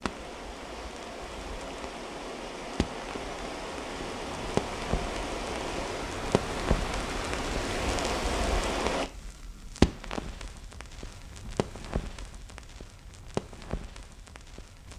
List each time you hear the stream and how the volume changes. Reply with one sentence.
The stream can be heard from 0.0 to 9.1 s, getting louder.